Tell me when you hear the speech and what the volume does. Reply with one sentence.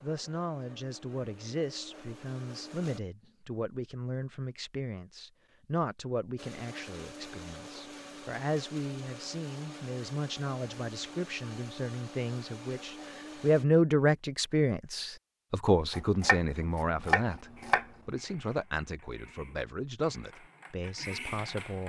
You can hear the speech from 0.0 to 21.8 s, getting louder then quieter.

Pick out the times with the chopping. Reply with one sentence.
You can hear the chopping from 15.9 to 17.9 s.